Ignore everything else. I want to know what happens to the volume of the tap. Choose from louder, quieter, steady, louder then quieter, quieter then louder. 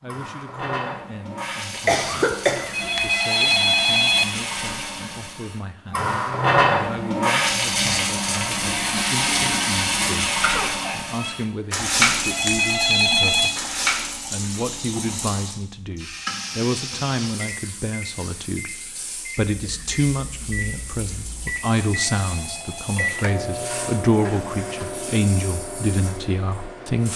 louder then quieter.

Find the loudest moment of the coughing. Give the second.
2 s.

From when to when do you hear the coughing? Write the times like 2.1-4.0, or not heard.
1.9-3.0, 10.4-11.3, 19.5-21.6.